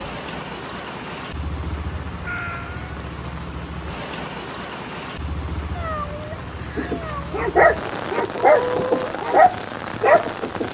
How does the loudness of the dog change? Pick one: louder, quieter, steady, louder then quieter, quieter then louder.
louder.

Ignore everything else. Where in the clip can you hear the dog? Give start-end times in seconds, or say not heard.
6.3-10.6.